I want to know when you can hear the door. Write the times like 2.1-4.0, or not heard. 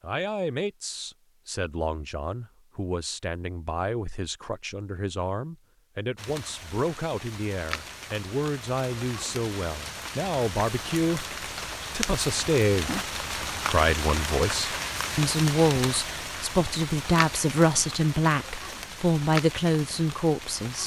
not heard.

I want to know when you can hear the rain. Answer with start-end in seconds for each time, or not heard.
6.2-20.8.